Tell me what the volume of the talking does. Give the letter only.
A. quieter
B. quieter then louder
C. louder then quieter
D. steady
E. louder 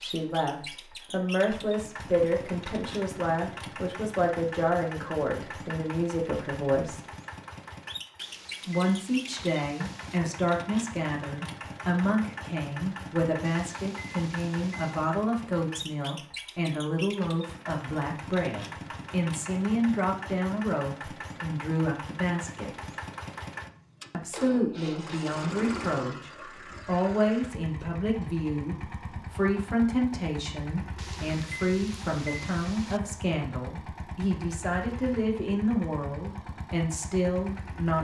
D.